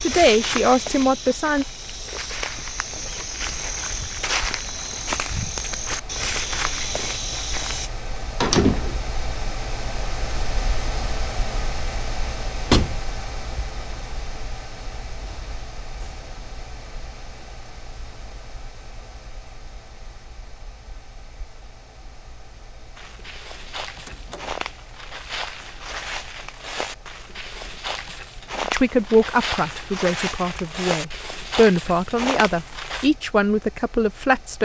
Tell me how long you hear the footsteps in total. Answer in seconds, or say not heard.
18 s.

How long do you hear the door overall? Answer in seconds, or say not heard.
2 s.